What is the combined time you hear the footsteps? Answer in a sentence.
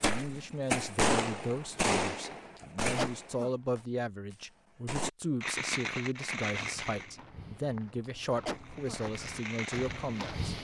The footsteps can be heard for 4 seconds in total.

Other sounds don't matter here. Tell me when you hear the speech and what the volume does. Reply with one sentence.
You can hear the speech from 0.0 to 10.5 s, at a steady volume.